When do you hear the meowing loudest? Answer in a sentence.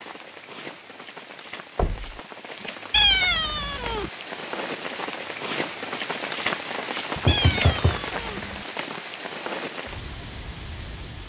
The loudest moment of the meowing is at 3 seconds.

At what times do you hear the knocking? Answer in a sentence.
You can hear the knocking from 1.8 to 2.2 s and from 7.2 to 8.6 s.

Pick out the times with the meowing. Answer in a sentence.
You can hear the meowing from 2.9 to 4.1 s and from 7.2 to 8.4 s.